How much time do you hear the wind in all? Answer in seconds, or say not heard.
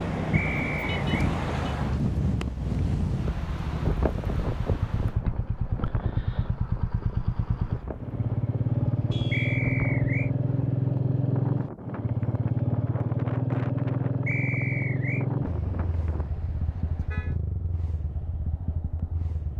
16 s.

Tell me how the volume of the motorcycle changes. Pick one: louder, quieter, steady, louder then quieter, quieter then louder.
louder then quieter.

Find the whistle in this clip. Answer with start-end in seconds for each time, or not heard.
0.3-1.1, 9.3-10.3, 14.2-15.2.